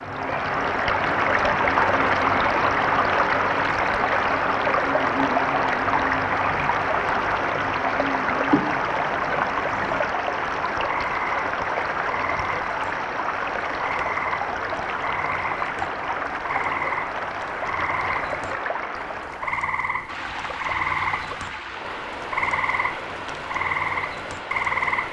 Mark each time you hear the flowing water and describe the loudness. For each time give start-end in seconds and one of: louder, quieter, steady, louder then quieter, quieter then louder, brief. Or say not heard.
0.0-25.0 quieter.